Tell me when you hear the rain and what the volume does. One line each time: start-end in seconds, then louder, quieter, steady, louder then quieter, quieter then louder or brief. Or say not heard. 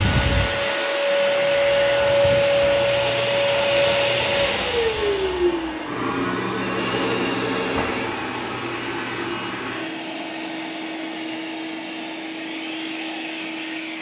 not heard.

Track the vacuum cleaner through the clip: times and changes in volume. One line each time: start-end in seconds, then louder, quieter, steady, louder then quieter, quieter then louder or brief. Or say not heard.
0.0-13.9 quieter.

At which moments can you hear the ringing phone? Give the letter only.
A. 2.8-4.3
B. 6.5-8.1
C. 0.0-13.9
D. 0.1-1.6
B.